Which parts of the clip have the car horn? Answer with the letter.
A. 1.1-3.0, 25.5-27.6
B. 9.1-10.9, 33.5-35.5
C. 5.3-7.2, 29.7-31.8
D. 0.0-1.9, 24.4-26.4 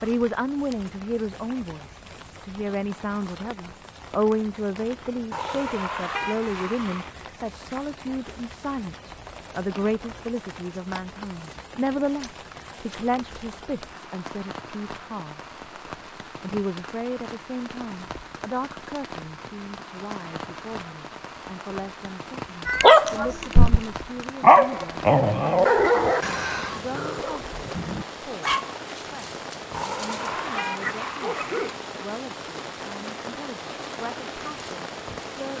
C.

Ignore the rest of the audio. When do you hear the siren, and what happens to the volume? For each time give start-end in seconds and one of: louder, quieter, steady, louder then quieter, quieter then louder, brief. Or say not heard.
not heard.